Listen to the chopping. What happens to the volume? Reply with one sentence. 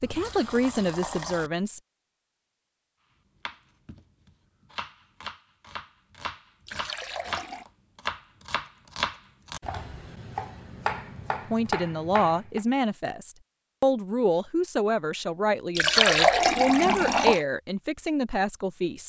The volume of the chopping goes up.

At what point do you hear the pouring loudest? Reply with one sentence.
The volume of the pouring peaks at 16 seconds.